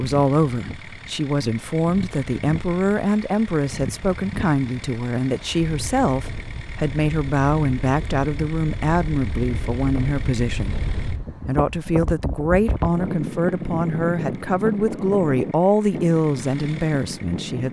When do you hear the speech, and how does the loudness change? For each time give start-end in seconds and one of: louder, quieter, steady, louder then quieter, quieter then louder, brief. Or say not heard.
0.0-17.6 steady.